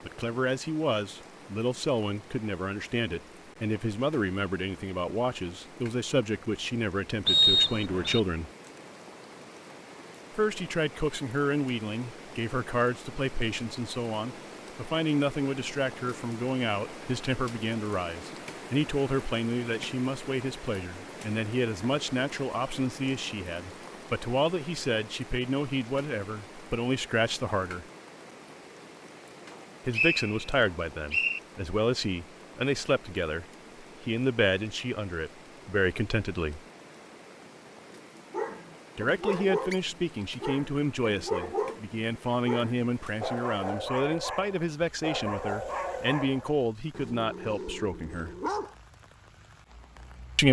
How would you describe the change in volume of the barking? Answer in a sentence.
The loudness of the barking goes down.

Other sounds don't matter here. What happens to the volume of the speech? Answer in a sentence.
The volume of the speech stays about the same.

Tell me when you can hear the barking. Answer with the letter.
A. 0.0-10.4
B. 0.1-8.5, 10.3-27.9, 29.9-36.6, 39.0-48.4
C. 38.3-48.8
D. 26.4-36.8
C.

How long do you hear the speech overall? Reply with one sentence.
You can hear the speech for 42 seconds altogether.